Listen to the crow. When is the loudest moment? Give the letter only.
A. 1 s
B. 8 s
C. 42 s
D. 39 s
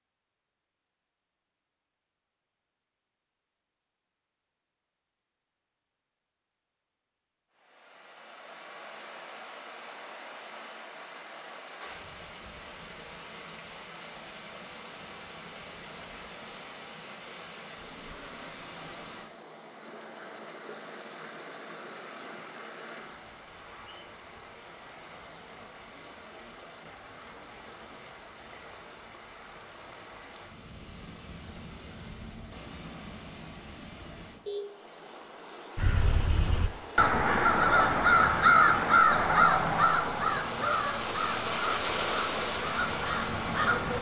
D.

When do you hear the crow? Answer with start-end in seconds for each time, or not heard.
35.8-43.9.